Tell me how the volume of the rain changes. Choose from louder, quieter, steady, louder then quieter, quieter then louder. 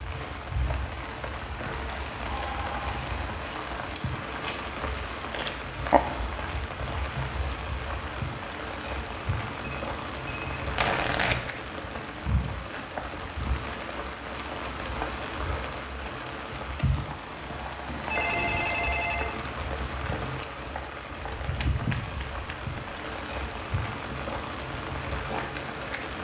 steady.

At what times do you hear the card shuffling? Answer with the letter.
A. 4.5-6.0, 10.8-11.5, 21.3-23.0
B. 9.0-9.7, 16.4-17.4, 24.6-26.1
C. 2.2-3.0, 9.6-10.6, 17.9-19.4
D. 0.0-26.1
A.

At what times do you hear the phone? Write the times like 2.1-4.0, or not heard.
2.2-3.0, 9.6-10.6, 17.9-19.4.